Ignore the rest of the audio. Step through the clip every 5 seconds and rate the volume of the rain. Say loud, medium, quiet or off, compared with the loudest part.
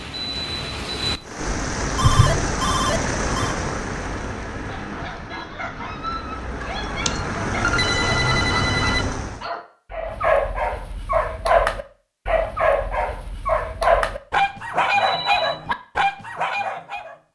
loud, loud, off, off.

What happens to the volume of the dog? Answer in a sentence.
The loudness of the dog goes up.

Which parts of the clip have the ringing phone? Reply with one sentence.
You can hear the ringing phone from 1.9 to 3.5 s, from 7.0 to 9.1 s and from 14.6 to 15.6 s.